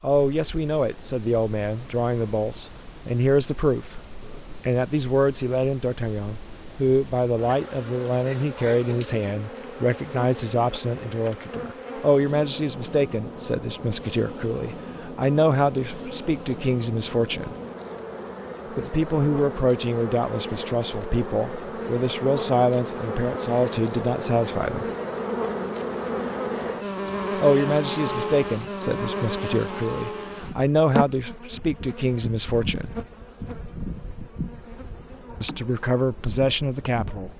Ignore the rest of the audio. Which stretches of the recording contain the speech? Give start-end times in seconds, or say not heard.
0.0-17.6, 18.8-24.9, 27.4-32.9, 35.4-37.3.